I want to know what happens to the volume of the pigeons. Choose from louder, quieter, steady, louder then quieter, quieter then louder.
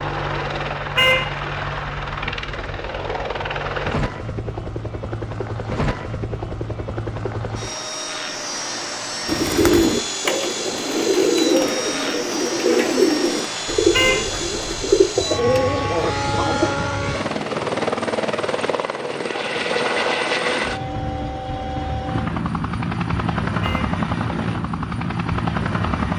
steady.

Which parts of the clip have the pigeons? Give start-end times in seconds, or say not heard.
9.2-16.7.